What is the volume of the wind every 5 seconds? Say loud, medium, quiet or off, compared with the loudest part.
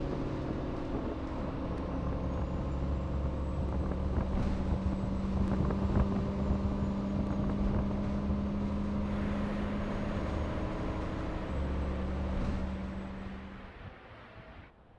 loud, loud, medium.